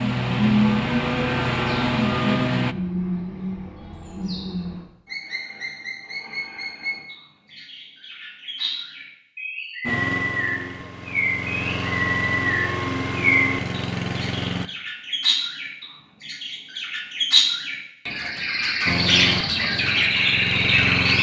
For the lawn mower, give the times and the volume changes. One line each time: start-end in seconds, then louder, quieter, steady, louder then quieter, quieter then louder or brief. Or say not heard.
0.0-2.8 brief
9.8-14.7 louder
18.9-21.1 brief.